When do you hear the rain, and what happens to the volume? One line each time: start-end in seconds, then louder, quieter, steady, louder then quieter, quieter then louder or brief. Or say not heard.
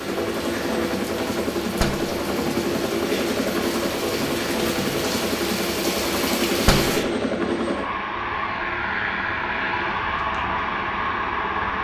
0.0-7.0 louder.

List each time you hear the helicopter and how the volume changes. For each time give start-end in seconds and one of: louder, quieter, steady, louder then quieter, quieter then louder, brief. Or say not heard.
0.0-11.7 steady.